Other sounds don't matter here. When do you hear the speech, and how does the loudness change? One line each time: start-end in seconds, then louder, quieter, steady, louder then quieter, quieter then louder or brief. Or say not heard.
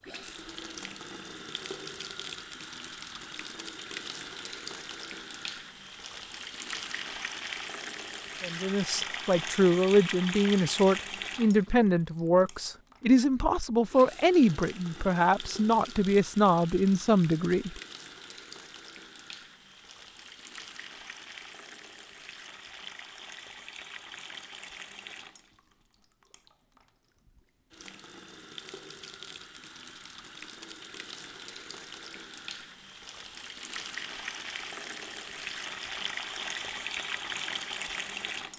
8.4-17.8 steady.